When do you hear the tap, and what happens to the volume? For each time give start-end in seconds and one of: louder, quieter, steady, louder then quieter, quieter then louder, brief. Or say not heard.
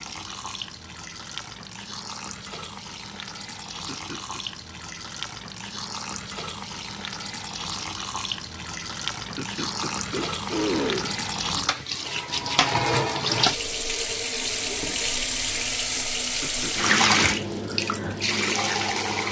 0.0-19.2 louder.